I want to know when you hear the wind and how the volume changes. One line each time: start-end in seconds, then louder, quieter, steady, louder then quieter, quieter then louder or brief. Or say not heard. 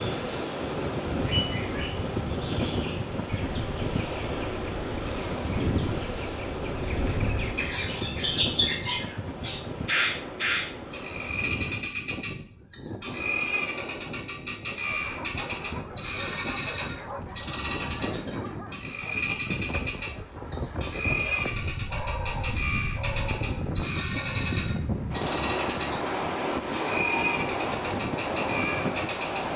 0.0-29.5 quieter then louder.